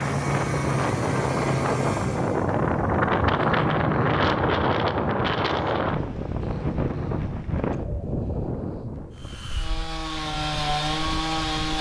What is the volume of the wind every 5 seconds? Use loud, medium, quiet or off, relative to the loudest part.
loud, medium, quiet.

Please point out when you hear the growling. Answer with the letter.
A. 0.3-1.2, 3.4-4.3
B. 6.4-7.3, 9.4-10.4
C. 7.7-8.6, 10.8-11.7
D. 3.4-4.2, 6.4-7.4
D.